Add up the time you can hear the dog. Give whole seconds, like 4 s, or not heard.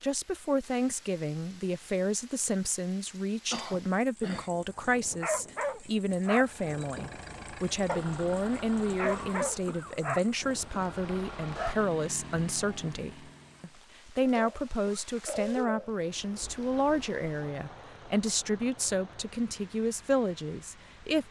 7 s.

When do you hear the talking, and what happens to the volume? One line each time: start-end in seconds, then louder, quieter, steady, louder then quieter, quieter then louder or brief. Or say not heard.
0.0-21.2 steady.